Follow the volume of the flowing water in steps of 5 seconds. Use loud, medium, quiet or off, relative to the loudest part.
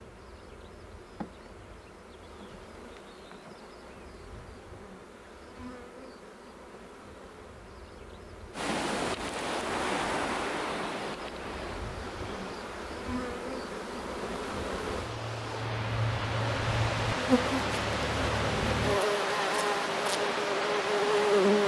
off, loud, medium, loud, loud.